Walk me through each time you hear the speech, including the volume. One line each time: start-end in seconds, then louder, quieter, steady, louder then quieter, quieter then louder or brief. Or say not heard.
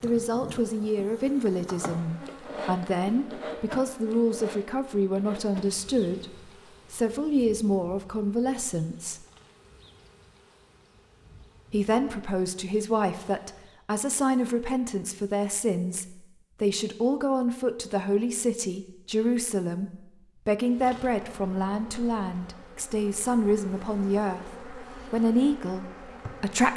0.0-9.2 steady
11.7-26.7 steady.